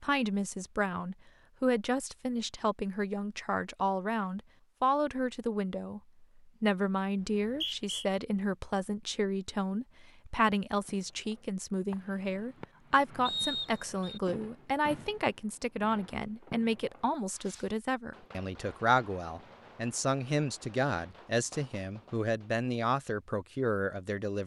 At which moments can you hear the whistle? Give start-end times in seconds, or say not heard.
7.2-8.1, 13.2-14.2.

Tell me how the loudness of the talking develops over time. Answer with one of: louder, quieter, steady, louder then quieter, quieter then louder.
steady.